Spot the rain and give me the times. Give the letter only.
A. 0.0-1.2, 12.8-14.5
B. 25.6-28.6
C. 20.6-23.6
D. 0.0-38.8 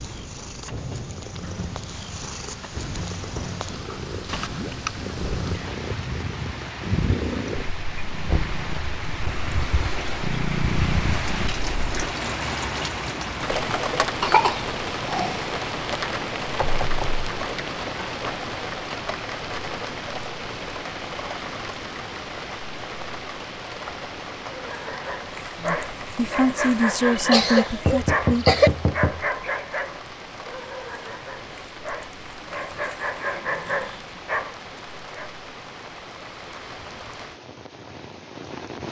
D.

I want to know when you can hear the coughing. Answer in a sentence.
You can hear the coughing from 14.2 to 15.4 s and from 26.9 to 28.7 s.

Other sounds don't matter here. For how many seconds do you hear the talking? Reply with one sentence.
The talking can be heard for 3 seconds in total.